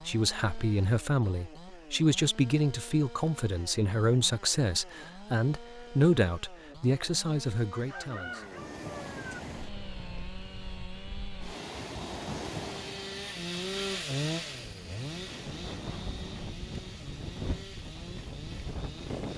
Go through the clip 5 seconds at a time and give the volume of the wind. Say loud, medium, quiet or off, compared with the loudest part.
off, loud, loud, loud.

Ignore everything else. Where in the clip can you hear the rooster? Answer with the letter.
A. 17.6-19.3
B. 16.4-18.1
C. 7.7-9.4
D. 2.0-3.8
C.